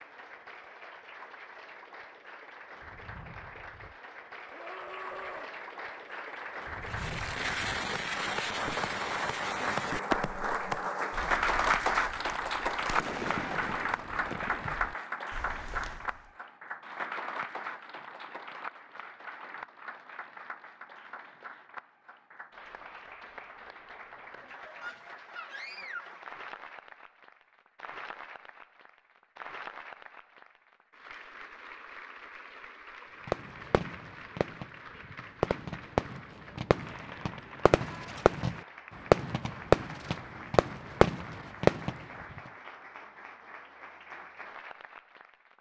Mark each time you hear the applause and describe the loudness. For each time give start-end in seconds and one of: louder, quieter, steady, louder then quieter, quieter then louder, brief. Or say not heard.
0.0-45.5 louder then quieter.